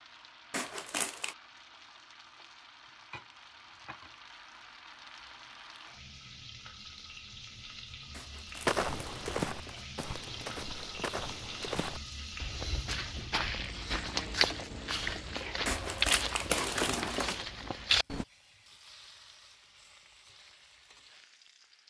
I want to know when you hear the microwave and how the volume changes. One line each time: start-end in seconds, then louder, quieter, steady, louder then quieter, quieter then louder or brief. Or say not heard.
not heard.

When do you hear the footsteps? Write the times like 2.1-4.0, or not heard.
8.7-18.2.